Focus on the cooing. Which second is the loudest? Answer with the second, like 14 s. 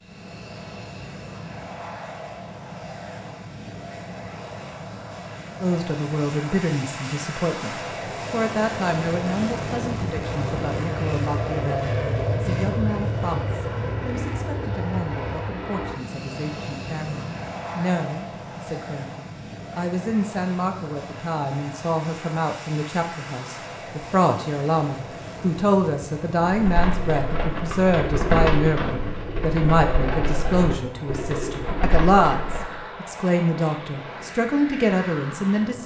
28 s.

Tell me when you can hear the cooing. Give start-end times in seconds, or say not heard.
26.4-32.8.